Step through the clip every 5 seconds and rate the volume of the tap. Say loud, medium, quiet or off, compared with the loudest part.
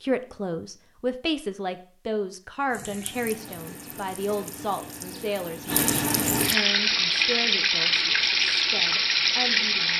quiet, loud.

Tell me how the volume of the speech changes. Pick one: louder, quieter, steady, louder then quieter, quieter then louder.
quieter.